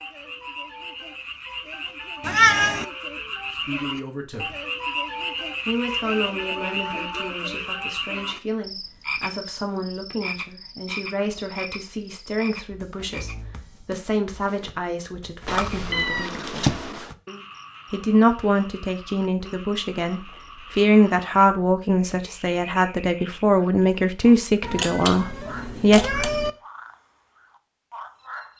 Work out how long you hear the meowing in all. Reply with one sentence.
You can hear the meowing for 4 seconds altogether.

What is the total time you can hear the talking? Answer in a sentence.
The talking can be heard for 20 seconds in total.